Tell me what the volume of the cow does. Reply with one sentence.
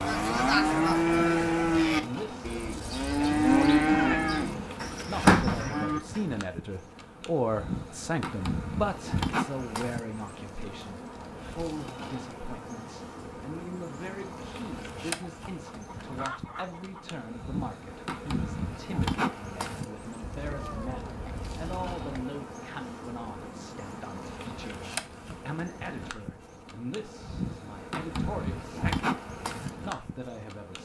The volume of the cow stays about the same.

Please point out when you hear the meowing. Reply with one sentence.
You can hear the meowing from 3.9 to 4.8 s and from 20.2 to 22.1 s.